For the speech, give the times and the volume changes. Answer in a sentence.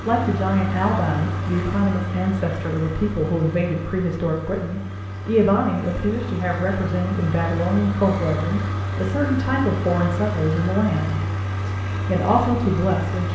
The speech can be heard from 0.0 to 13.2 s, at a steady volume.